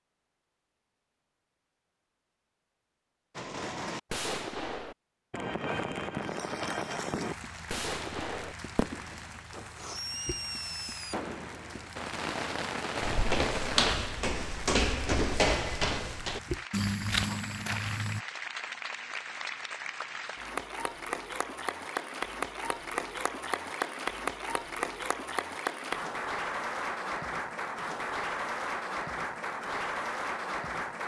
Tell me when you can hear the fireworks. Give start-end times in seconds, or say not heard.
3.4-13.9.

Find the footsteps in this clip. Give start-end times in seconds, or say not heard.
13.0-18.2.